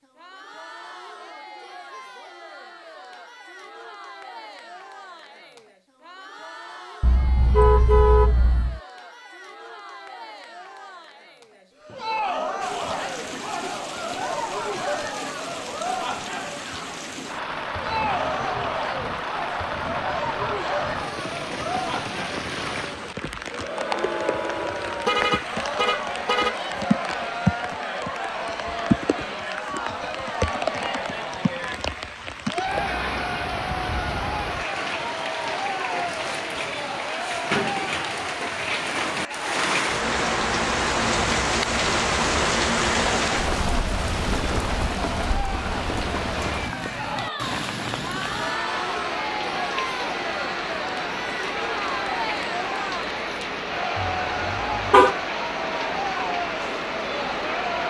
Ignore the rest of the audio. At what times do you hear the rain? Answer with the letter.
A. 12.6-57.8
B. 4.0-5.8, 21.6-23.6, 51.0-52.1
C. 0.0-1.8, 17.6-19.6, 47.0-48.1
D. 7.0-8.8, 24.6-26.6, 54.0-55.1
A.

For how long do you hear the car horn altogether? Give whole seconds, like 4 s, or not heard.
5 s.